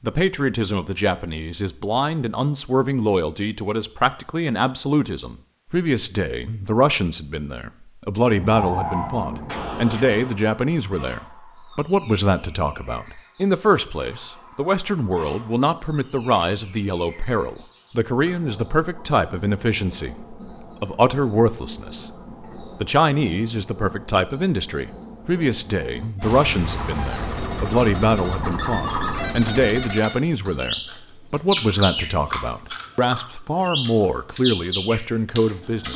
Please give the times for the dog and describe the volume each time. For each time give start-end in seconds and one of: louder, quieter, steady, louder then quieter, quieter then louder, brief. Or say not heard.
not heard.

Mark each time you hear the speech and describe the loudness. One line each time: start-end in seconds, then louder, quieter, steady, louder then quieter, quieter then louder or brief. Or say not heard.
0.0-35.9 steady.